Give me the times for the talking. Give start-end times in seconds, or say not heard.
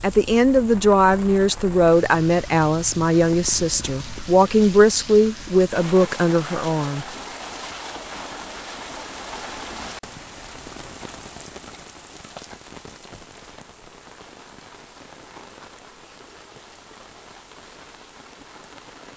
0.0-7.0.